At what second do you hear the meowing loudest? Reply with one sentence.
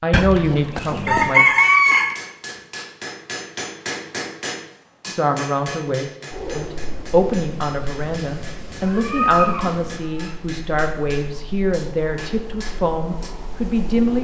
The loudest moment of the meowing is at 9 seconds.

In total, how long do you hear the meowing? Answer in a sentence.
The meowing can be heard for 3 seconds in total.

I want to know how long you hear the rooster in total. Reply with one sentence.
The rooster can be heard for 2 seconds in total.